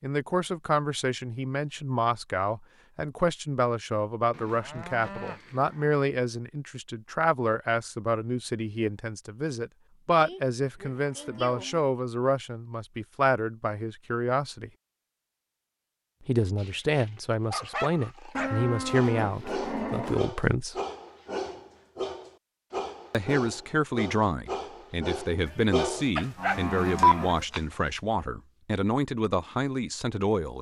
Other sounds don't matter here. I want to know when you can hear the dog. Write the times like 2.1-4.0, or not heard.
16.4-27.6.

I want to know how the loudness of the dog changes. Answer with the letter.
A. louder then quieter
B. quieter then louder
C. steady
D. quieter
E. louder
E.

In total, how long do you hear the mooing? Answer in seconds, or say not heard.
7 s.